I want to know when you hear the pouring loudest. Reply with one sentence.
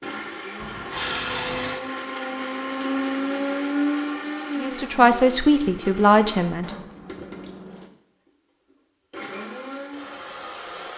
The loudest moment of the pouring is at 1 second.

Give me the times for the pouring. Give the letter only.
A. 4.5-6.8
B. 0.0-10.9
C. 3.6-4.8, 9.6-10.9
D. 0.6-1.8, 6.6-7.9
D.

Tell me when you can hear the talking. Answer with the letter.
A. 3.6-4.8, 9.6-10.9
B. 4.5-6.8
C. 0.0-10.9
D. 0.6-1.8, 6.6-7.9
B.